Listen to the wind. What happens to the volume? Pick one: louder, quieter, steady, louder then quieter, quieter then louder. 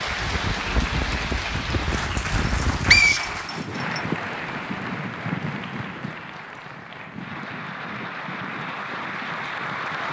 quieter.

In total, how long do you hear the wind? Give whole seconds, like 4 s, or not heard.
10 s.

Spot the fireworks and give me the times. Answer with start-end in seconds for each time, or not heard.
not heard.